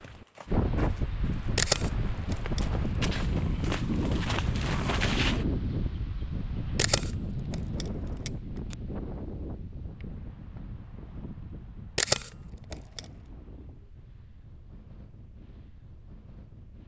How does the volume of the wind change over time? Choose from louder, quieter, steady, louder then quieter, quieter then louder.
quieter.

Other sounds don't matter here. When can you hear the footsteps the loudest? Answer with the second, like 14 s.
5 s.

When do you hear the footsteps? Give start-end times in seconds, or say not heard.
0.0-5.5.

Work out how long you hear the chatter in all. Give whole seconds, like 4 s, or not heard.
not heard.